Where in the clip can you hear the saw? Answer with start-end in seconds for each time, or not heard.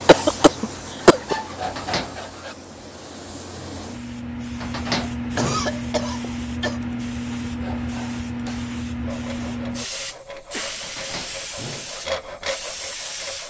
0.0-2.5, 7.5-13.4.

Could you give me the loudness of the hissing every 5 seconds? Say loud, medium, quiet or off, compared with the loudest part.
medium, loud, medium.